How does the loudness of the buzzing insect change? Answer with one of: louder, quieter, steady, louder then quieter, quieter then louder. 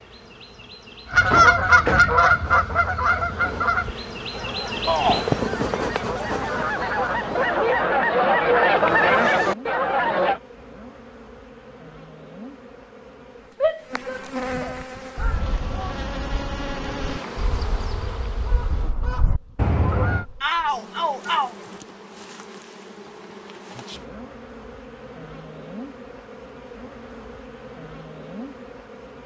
quieter.